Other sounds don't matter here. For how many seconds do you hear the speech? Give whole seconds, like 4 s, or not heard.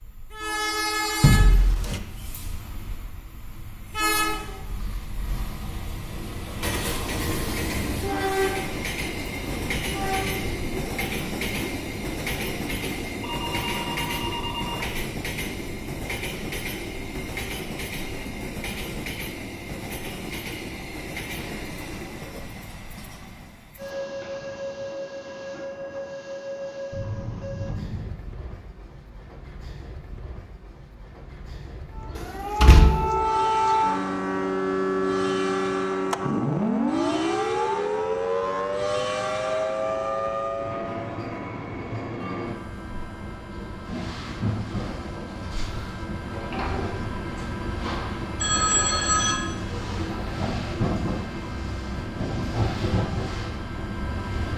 not heard.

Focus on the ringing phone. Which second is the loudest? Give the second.
49 s.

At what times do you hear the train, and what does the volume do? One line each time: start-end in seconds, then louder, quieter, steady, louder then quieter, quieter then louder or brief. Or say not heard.
0.0-54.5 quieter then louder.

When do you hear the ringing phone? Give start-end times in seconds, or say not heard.
13.2-14.9, 26.9-28.2, 48.4-49.4.